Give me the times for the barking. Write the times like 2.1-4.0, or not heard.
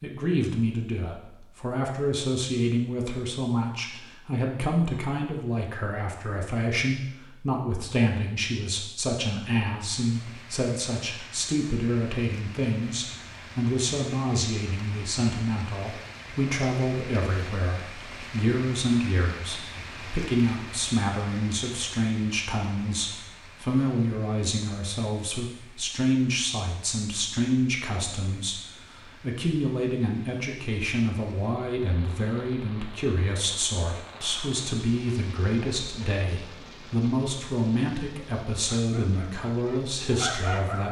38.5-40.8.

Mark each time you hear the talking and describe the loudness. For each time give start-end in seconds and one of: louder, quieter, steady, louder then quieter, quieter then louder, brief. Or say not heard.
0.0-40.8 steady.